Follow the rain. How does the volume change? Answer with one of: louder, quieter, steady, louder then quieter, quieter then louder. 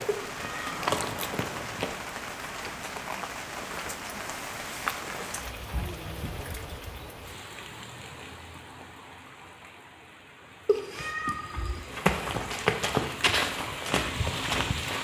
quieter then louder.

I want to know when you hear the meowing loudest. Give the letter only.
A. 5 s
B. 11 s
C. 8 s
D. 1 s
B.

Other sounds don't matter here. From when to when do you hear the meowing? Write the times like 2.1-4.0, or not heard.
0.1-0.8, 10.7-11.8.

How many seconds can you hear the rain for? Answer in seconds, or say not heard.
15 s.